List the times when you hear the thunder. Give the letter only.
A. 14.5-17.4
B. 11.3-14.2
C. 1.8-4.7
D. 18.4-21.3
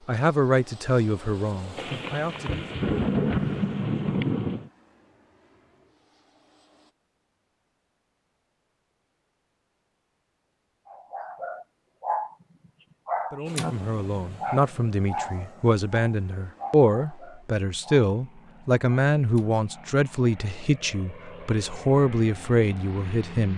C.